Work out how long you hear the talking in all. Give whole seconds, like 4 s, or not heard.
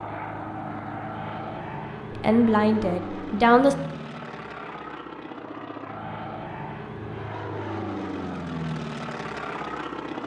2 s.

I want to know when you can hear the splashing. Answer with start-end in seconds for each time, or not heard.
not heard.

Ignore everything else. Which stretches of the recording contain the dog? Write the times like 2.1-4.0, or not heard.
not heard.